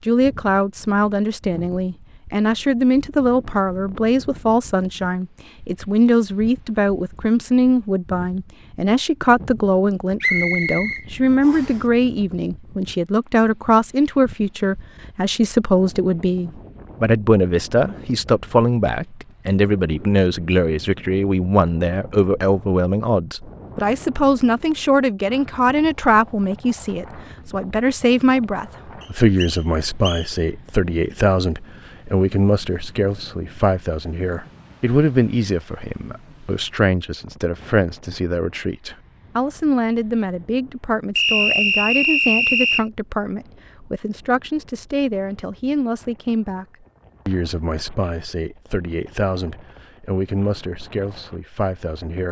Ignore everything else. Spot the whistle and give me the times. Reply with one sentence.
You can hear the whistle from 10.2 to 11.8 s, from 29.0 to 30.3 s and from 41.1 to 42.9 s.